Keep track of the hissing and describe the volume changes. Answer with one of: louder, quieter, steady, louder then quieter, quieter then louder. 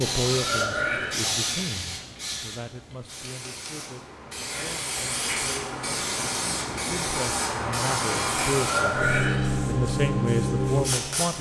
quieter then louder.